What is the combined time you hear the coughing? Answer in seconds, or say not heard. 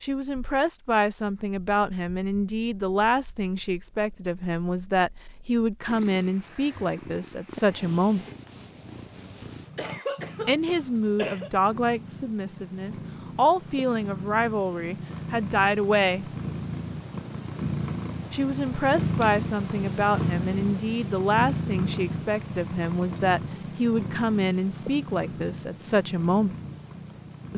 2 s.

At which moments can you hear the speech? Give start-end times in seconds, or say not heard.
0.0-8.2, 10.4-16.2, 18.3-26.6.